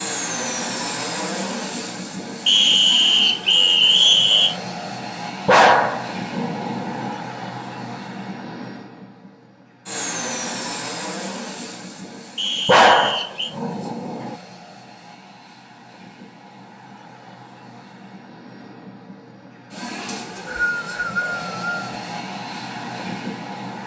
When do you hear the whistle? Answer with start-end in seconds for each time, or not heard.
2.5-4.5, 12.3-13.5, 20.1-21.9.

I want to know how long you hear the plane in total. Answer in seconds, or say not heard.
24 s.